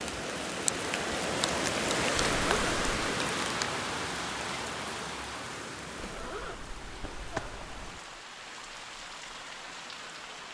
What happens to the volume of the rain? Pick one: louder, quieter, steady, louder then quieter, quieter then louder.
quieter.